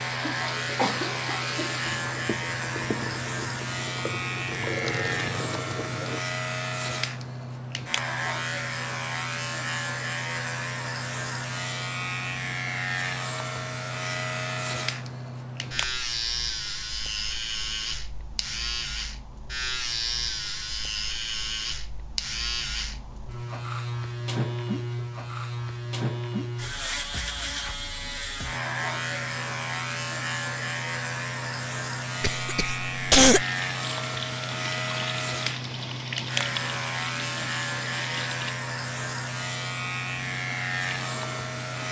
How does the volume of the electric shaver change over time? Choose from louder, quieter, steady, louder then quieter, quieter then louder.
steady.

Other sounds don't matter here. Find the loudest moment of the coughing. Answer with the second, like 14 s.
33 s.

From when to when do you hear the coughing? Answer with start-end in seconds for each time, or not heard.
0.2-2.2, 32.2-33.5.